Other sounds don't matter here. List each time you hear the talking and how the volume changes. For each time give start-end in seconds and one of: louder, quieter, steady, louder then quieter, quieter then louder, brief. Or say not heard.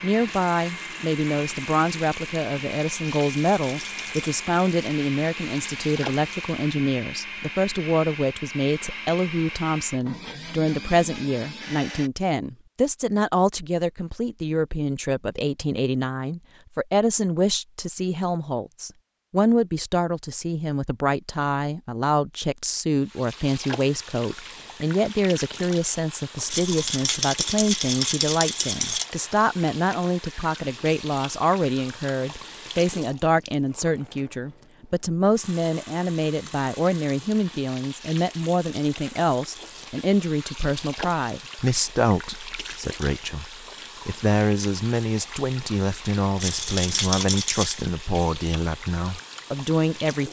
0.0-50.2 steady.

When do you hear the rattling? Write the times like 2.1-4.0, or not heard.
3.2-4.3, 26.5-29.1, 46.4-47.9.